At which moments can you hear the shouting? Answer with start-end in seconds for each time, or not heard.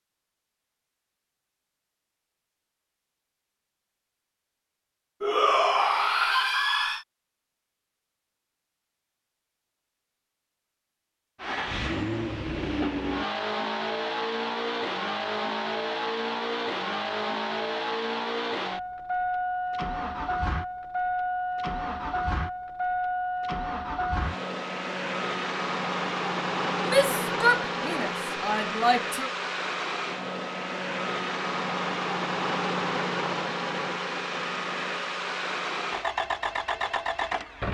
5.2-7.0, 26.9-29.3.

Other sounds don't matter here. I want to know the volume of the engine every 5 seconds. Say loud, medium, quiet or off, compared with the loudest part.
off, off, loud, loud, loud, loud, loud, loud.